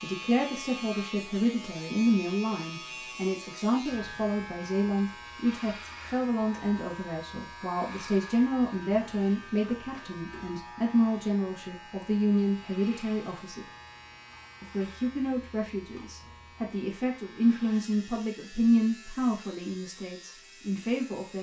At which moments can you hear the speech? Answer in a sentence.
You can hear the speech from 0.0 to 13.7 s and from 14.6 to 21.3 s.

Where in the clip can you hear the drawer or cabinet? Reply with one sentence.
You can't hear the drawer or cabinet here.